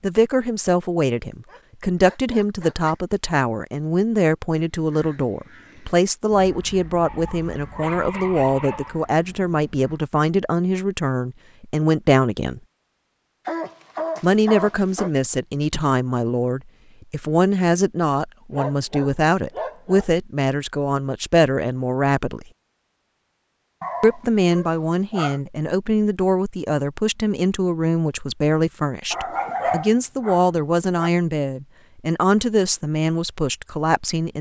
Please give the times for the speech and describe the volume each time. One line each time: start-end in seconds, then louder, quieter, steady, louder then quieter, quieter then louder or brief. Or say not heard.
0.0-12.6 steady
14.2-22.4 steady
24.0-34.3 steady.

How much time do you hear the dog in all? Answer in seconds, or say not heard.
10 s.